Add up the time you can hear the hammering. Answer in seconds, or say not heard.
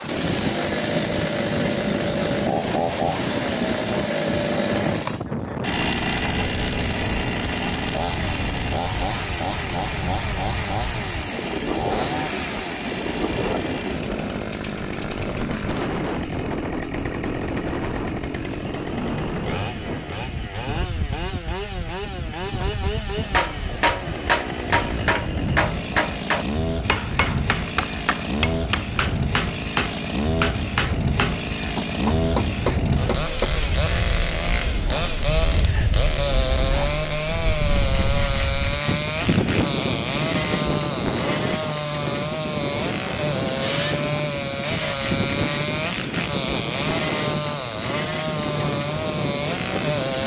10 s.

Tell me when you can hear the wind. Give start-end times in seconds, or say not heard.
0.0-50.2.